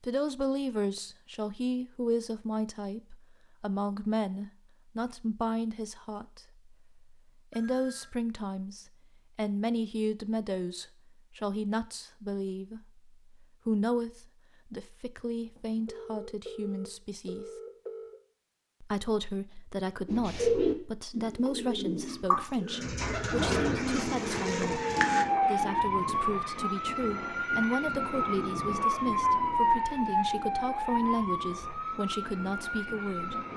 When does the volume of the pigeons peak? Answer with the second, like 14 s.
21 s.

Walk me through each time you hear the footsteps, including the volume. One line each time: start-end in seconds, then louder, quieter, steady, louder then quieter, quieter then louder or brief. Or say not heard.
not heard.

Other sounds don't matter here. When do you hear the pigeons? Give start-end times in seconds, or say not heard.
20.1-25.2.